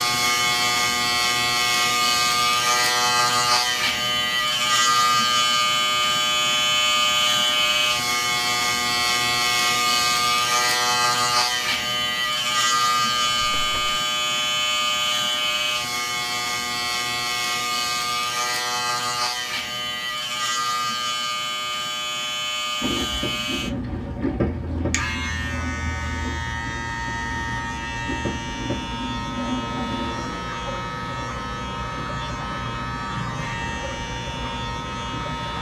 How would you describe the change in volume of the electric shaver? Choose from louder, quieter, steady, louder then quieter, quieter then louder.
quieter.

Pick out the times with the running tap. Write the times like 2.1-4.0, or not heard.
22.8-35.5.